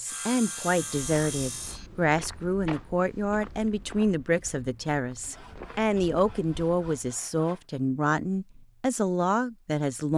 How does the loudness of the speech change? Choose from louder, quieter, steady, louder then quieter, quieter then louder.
steady.